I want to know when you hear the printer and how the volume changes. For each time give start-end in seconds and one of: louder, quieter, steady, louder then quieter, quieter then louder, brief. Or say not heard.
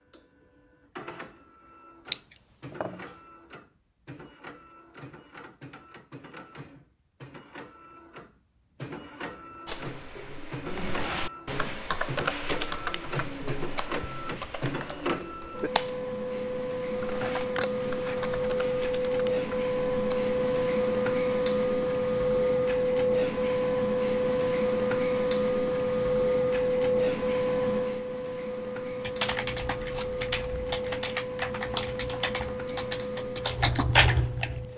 0.0-34.7 louder then quieter.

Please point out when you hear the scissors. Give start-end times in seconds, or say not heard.
2.1-3.0, 17.0-18.5, 29.8-30.8.